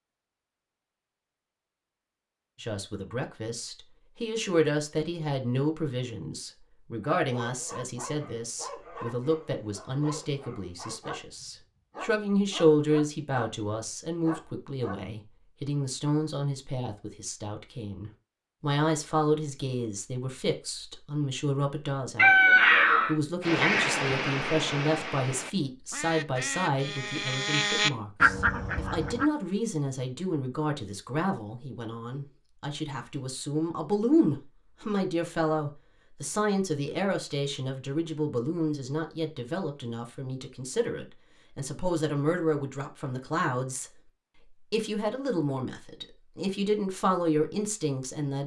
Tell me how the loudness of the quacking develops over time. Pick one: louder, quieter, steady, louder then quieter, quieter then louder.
quieter then louder.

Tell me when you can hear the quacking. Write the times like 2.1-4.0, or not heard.
23.4-29.3.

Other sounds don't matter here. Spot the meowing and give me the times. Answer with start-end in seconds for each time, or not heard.
22.1-23.1.